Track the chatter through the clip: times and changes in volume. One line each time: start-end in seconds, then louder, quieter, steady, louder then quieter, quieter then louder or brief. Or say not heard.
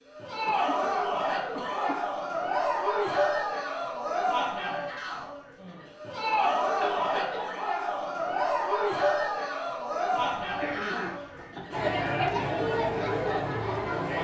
0.1-14.1 steady.